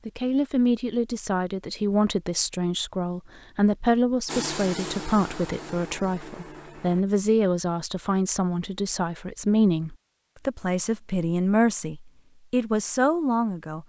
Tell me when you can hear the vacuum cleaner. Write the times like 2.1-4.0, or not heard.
4.2-7.0.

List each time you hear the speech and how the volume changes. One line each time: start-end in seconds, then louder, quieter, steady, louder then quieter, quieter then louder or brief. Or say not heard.
0.1-13.8 steady.